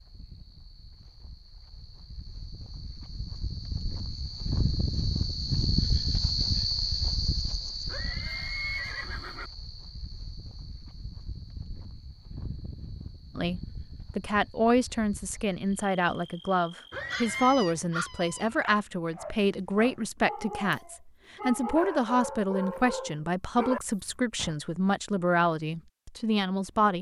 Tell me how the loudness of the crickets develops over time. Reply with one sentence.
The loudness of the crickets goes up, then down.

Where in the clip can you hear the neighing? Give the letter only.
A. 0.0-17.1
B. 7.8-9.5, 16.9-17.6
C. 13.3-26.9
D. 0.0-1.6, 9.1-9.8
B.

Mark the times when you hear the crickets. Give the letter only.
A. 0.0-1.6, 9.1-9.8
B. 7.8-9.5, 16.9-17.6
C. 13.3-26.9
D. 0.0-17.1
D.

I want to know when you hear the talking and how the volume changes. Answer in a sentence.
You can hear the talking from 13.3 to 26.9 s, at a steady volume.